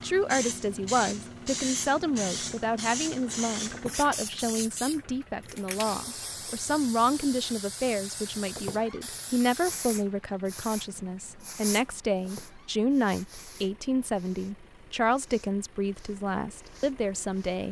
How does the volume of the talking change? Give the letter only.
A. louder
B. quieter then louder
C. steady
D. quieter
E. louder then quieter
C.